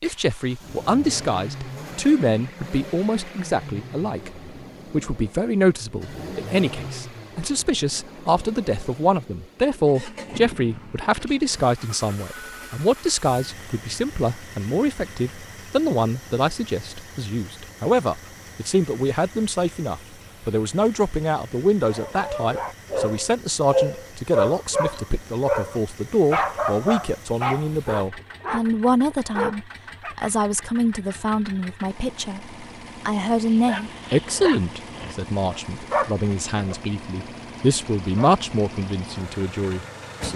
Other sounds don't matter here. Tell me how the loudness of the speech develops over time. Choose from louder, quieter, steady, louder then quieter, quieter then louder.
steady.